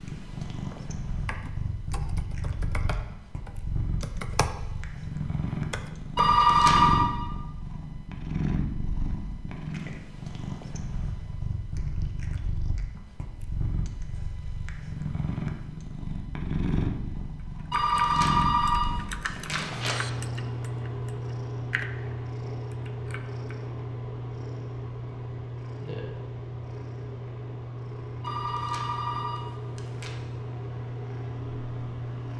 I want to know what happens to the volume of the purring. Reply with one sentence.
The volume of the purring stays about the same.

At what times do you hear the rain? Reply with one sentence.
You can't hear the rain here.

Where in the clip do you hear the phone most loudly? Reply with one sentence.
The volume of the phone peaks at 7 seconds.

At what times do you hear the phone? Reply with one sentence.
The phone can be heard from 6.2 to 7.1 s, from 17.7 to 20.0 s and from 28.2 to 30.1 s.